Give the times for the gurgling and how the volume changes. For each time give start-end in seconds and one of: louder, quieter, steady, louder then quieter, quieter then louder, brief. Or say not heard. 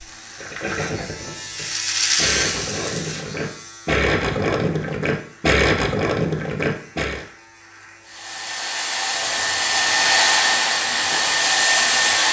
0.4-7.2 louder.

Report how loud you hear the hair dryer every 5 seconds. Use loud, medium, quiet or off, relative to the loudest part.
off, medium, loud.